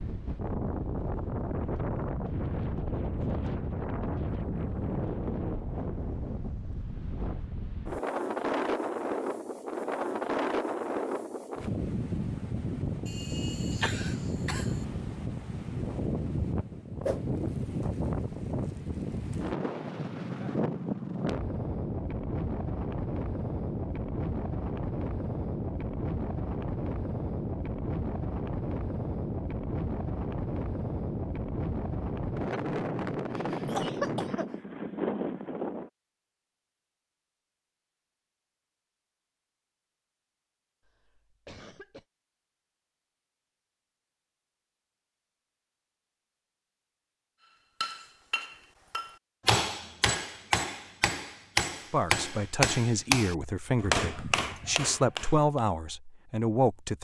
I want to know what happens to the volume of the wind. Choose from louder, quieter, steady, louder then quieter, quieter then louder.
steady.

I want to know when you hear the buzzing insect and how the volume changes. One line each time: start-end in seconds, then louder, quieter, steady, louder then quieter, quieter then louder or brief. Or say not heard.
not heard.